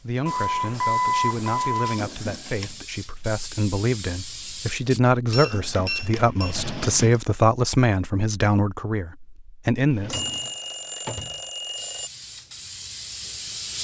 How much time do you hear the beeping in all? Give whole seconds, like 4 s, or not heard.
5 s.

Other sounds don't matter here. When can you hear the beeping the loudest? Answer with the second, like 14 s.
1 s.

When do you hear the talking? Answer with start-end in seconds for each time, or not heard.
0.0-10.2.